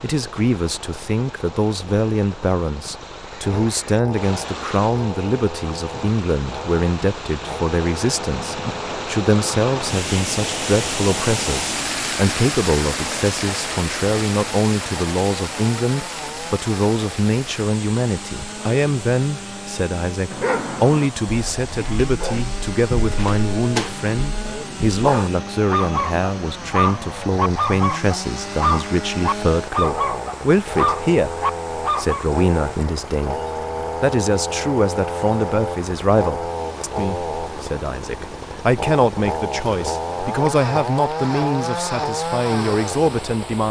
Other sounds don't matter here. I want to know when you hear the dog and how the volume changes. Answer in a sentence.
The dog can be heard from 20.3 to 32.2 s, getting louder.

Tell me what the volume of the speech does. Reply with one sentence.
The volume of the speech stays about the same.